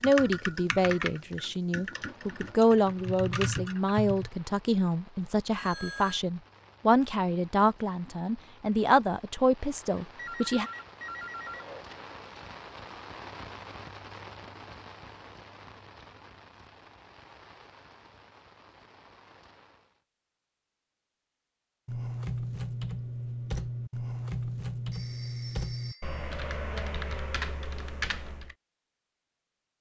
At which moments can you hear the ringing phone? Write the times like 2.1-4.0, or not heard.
5.5-6.2, 10.0-11.9, 24.9-26.2.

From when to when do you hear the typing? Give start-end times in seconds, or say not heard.
0.0-4.3, 21.9-28.6.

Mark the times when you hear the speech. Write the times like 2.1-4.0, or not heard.
0.0-10.7.